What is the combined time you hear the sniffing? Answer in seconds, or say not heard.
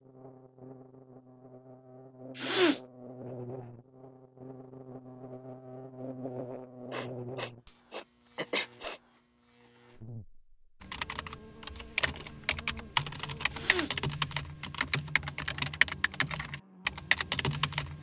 3 s.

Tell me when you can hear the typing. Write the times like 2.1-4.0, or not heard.
10.8-17.9.